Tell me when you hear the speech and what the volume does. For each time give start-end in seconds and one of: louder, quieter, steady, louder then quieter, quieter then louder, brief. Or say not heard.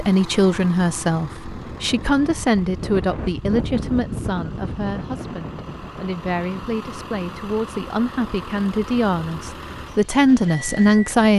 0.0-11.3 quieter then louder.